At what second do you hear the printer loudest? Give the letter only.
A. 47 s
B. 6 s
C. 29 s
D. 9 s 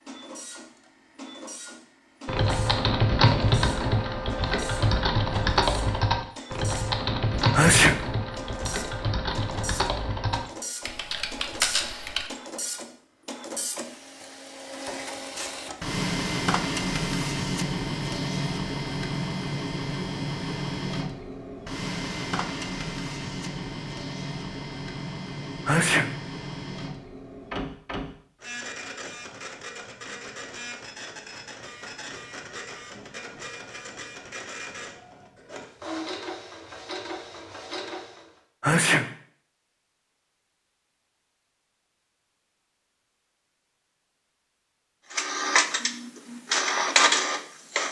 A.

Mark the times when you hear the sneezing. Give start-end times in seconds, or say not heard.
7.5-8.0, 25.6-26.1, 38.6-39.1.